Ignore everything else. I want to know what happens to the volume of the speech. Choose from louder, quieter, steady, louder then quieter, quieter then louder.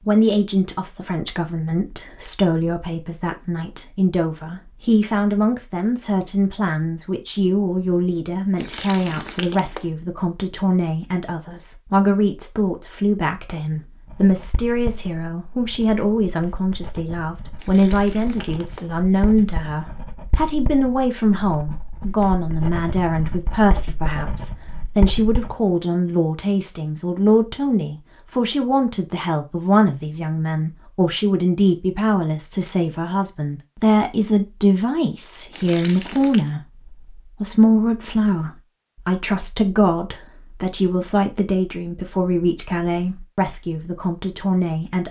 steady.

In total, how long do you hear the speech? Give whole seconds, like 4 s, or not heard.
45 s.